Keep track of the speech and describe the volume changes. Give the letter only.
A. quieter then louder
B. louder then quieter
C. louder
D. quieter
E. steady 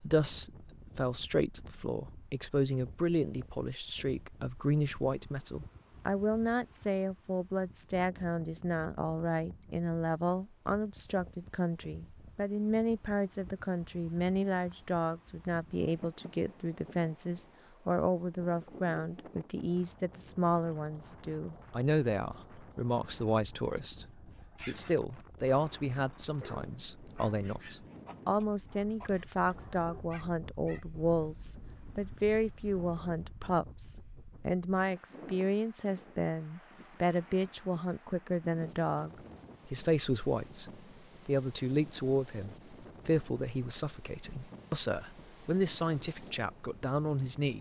E.